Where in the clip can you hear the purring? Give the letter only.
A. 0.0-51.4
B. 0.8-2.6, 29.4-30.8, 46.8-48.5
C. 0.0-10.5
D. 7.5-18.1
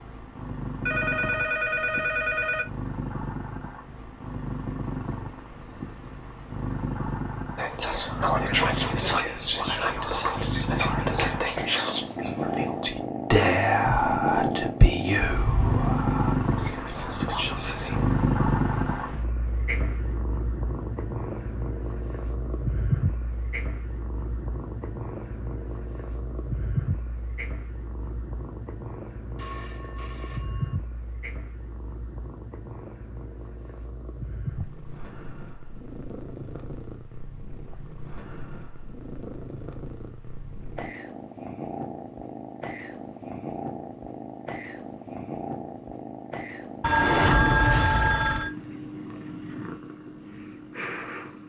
A.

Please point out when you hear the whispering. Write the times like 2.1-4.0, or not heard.
7.5-18.1.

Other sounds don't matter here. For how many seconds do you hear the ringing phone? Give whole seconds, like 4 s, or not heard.
5 s.